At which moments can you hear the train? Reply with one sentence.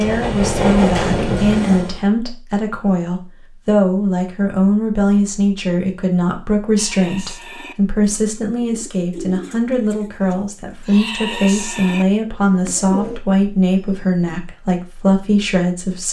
The train can be heard from 0.0 to 2.0 s.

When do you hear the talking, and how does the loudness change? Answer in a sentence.
You can hear the talking from 0.0 to 16.0 s, at a steady volume.